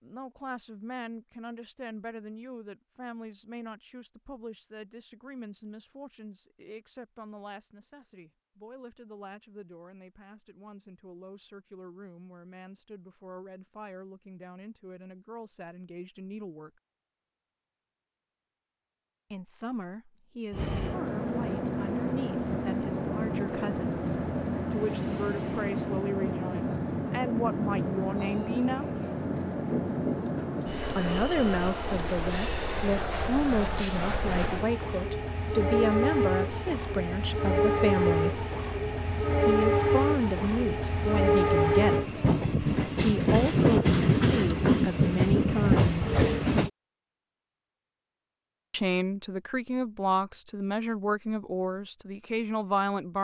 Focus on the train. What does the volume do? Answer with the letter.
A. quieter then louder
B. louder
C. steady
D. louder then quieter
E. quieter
B.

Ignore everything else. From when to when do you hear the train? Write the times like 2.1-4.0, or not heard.
20.5-46.7.